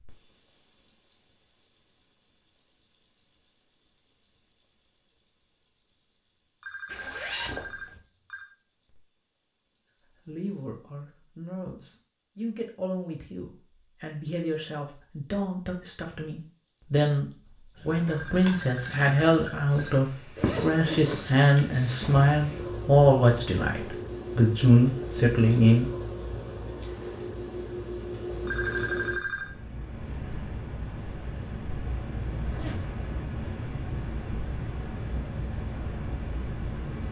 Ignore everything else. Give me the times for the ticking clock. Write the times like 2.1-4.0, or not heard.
not heard.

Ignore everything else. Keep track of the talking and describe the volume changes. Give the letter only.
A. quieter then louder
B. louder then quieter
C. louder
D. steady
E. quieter
C.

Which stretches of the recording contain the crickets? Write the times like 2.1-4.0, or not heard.
0.0-37.0.